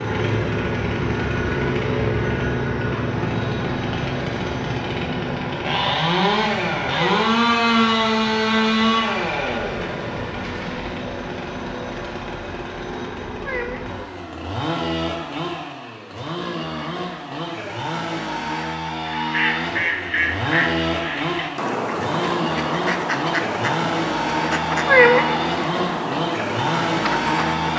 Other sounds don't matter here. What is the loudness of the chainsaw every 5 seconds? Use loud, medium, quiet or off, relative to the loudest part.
loud, loud, medium, medium, medium, loud.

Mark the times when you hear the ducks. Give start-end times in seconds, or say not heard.
19.1-27.7.